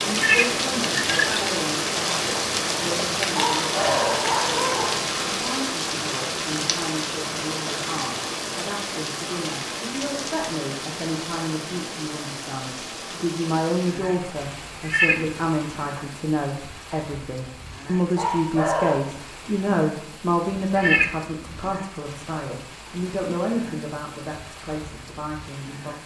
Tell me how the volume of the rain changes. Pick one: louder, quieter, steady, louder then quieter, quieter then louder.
quieter.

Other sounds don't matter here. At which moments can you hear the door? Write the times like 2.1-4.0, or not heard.
not heard.